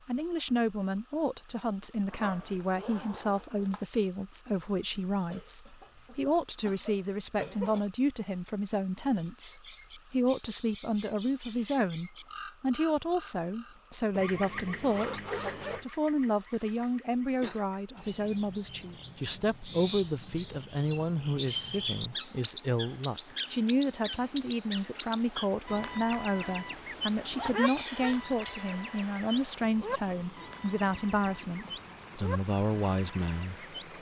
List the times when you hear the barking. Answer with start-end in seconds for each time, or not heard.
not heard.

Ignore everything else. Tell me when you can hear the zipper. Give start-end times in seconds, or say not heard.
2.0-3.9, 14.1-15.8, 26.2-27.6.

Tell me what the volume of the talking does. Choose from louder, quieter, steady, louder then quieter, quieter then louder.
steady.